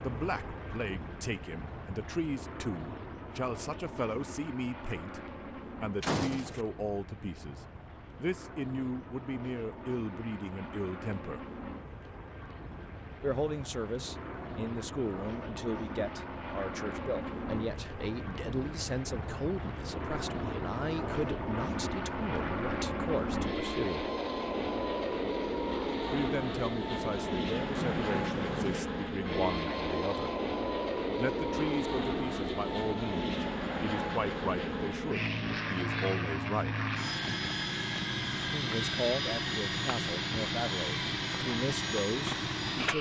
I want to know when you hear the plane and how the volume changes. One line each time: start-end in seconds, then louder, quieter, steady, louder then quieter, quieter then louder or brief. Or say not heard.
0.0-42.9 louder.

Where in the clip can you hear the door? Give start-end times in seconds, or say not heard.
6.0-6.7, 27.7-28.9.